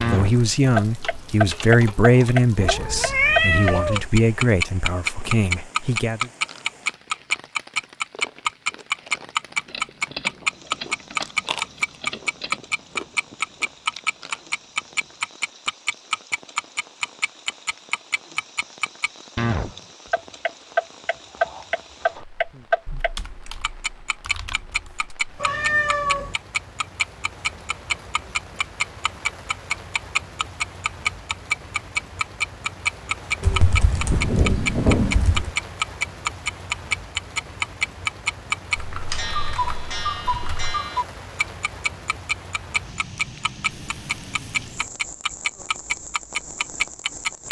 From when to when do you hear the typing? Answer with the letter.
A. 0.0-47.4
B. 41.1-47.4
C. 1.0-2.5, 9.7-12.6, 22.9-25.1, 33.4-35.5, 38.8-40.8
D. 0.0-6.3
C.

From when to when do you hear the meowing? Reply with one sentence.
The meowing can be heard from 2.5 to 4.0 s, from 25.4 to 26.4 s and from 43.8 to 44.8 s.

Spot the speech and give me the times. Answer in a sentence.
You can hear the speech from 0.0 to 6.3 s.